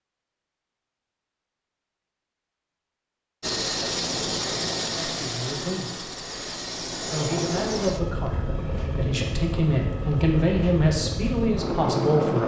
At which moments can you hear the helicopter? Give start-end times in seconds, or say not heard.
3.4-12.4.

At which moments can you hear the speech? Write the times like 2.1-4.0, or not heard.
4.9-6.2, 7.0-12.4.